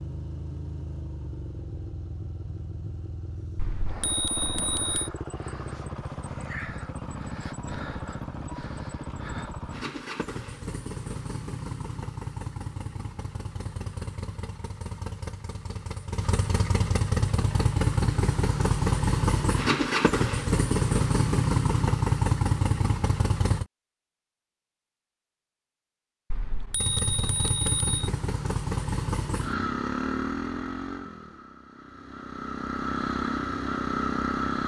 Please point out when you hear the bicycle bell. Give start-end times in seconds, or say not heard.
3.5-5.1, 26.3-27.9.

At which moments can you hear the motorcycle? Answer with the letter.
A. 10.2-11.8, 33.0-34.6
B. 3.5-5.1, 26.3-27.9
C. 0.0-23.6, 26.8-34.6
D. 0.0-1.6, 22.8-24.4
C.